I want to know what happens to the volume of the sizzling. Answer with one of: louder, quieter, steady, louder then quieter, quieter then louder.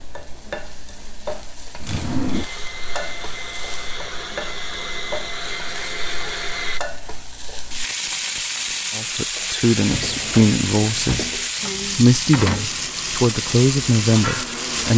louder.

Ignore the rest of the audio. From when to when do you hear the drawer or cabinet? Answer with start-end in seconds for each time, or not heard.
1.8-2.5, 9.9-11.4.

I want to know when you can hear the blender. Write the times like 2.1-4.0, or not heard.
2.3-6.8, 12.7-14.9.